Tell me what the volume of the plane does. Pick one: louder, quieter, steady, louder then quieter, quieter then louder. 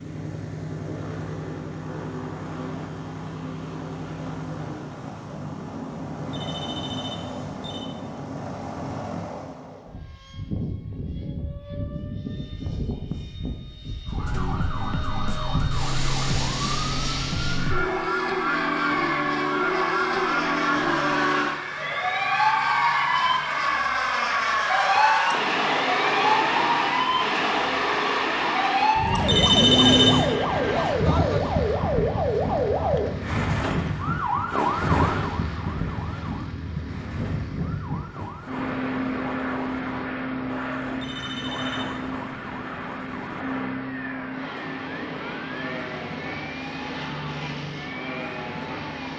louder then quieter.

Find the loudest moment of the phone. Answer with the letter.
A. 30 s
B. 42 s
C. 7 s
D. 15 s
A.